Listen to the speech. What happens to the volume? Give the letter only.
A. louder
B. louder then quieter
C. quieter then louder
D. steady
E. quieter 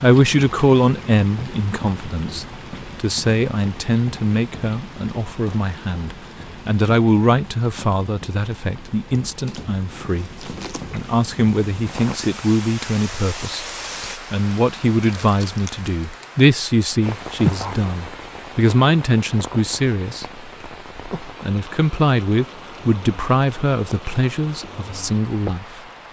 D.